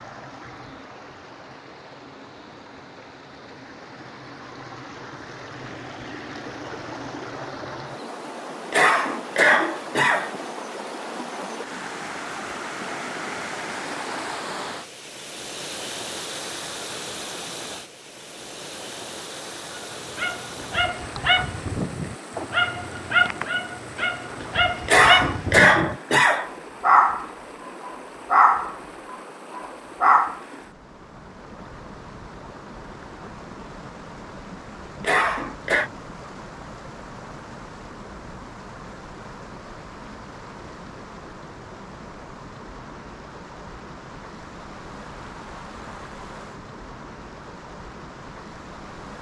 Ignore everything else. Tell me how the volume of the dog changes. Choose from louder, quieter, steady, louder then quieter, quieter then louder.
louder.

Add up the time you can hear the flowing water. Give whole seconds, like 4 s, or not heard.
49 s.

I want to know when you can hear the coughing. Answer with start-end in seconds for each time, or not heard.
8.7-10.3, 24.9-26.5, 35.0-35.9.